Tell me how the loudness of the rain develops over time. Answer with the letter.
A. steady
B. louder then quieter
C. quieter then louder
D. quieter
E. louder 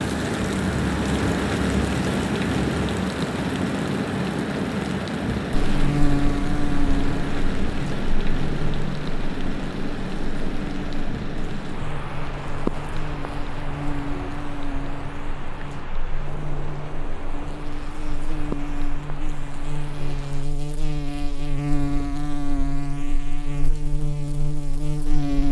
D.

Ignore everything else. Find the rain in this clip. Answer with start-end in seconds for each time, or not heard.
0.0-20.4.